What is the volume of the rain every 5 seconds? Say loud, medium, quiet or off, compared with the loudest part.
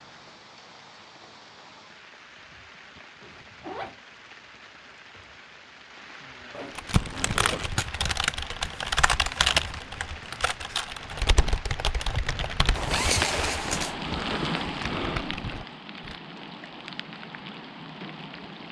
quiet, medium, loud, loud.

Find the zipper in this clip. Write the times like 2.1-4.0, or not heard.
3.2-4.0, 6.5-7.7, 12.8-13.9.